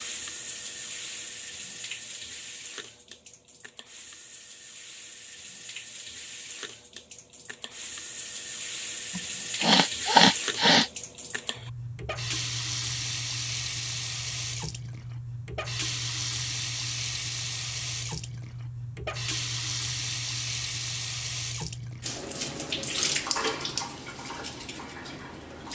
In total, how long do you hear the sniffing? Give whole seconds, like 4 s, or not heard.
2 s.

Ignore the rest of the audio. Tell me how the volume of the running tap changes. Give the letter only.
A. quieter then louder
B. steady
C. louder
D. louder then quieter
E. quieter
C.